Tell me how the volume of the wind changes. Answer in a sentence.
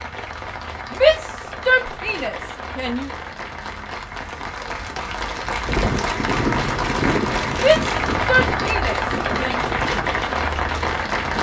The volume of the wind goes down.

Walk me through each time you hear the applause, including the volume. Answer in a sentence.
The applause can be heard from 0.0 to 11.3 s, getting louder.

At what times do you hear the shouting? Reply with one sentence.
You can hear the shouting from 0.9 to 3.1 s and from 7.5 to 9.7 s.